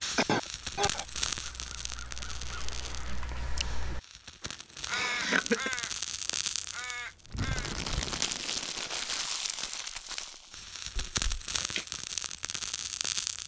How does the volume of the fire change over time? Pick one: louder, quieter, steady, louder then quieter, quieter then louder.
quieter then louder.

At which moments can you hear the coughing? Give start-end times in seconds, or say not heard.
0.1-1.1, 4.9-5.7, 10.9-11.8.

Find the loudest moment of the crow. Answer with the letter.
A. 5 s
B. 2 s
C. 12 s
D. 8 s
A.